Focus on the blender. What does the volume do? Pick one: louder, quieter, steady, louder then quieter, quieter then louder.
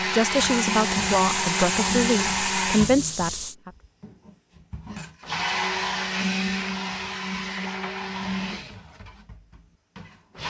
quieter.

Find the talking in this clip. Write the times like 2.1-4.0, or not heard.
0.0-3.7.